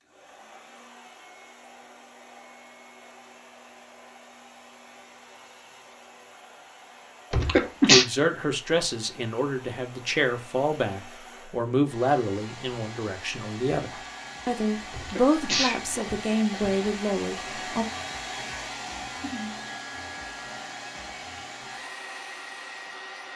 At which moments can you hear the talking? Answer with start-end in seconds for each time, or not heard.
7.8-17.9.